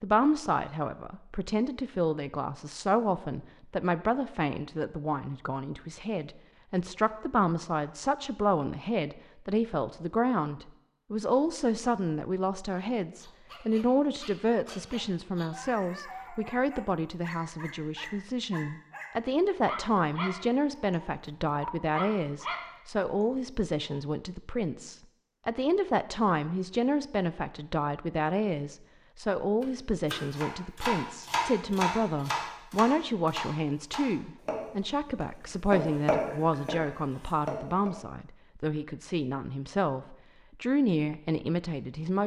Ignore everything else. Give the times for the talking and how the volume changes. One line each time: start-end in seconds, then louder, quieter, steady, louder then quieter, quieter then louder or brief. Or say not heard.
0.0-42.2 steady.